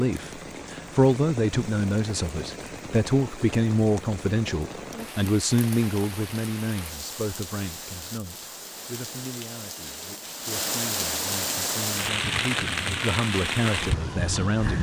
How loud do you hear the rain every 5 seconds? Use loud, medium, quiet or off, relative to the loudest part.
medium, medium, loud.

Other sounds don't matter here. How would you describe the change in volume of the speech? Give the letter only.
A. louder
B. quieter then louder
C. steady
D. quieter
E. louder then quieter
B.